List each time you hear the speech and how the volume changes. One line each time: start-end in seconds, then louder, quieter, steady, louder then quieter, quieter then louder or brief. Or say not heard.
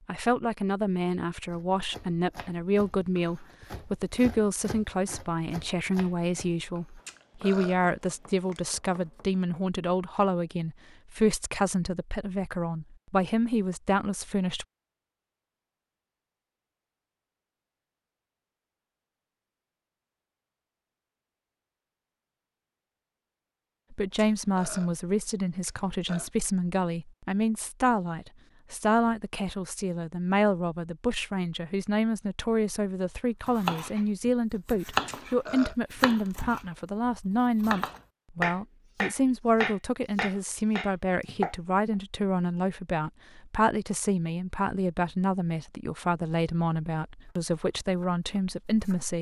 0.1-14.7 steady
23.9-49.1 steady.